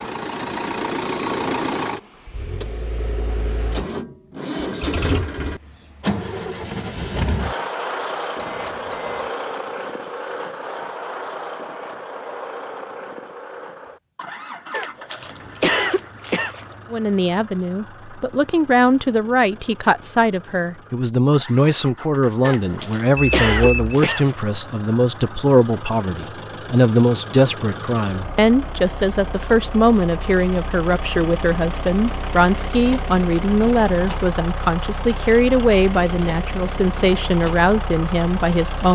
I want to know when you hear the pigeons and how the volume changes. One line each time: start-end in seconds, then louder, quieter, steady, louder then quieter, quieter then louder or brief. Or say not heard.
not heard.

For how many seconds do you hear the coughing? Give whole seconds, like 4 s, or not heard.
4 s.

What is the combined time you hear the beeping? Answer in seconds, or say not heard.
2 s.